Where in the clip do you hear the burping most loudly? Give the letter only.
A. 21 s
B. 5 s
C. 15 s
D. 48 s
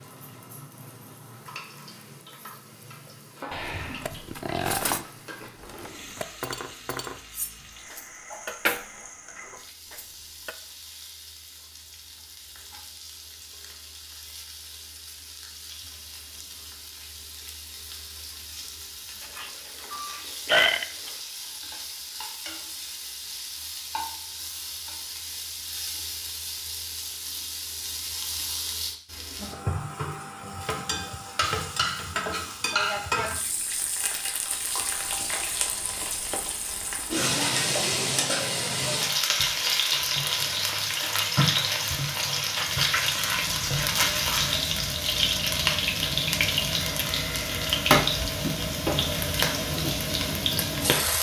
A.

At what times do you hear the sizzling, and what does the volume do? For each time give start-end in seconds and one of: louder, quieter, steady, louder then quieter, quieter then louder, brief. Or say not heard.
0.0-51.1 louder.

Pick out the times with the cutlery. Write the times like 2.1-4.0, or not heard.
3.6-10.6.